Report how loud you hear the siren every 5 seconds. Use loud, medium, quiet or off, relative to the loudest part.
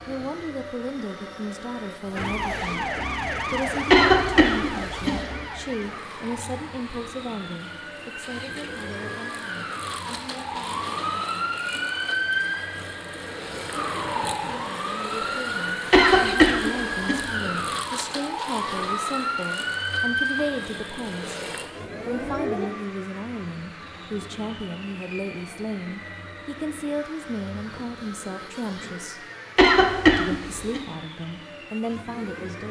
loud, medium, loud, loud, loud, off, off.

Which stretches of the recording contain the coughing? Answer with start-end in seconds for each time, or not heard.
3.9-5.2, 15.9-17.2, 29.6-30.8.